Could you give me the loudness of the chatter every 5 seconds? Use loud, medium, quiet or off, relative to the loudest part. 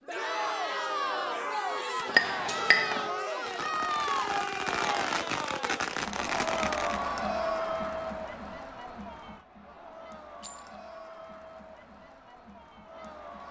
loud, loud, quiet.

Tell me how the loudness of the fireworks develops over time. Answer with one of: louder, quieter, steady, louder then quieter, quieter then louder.
louder.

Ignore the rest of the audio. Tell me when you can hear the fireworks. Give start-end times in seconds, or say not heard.
0.8-7.2.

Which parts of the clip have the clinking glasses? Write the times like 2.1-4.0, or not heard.
2.0-3.0, 10.4-10.8.